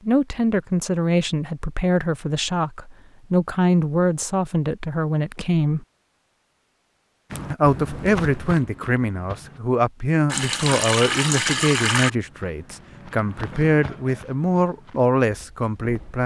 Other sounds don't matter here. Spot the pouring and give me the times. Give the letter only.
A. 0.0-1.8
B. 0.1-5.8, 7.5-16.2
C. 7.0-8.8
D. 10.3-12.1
D.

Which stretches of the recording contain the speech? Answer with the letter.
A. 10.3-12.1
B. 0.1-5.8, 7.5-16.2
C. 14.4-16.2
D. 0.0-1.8
B.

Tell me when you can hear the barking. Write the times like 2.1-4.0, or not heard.
not heard.